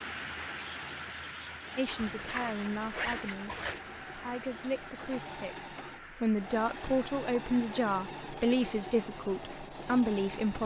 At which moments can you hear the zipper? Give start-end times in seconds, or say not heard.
1.9-3.9.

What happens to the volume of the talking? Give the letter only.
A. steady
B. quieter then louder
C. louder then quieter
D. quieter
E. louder
E.